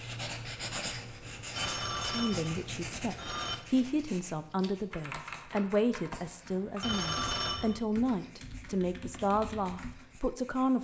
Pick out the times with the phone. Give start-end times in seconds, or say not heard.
1.6-3.5, 6.8-7.8.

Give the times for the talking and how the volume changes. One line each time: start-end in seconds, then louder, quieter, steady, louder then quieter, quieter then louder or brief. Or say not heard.
2.0-10.7 steady.